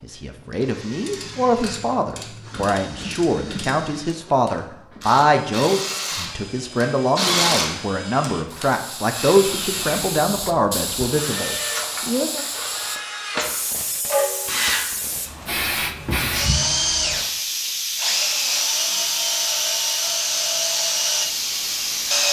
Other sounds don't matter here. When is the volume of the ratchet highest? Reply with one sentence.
The loudest moment of the ratchet is at 7 seconds.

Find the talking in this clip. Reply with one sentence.
The talking can be heard from 0.0 to 12.4 s.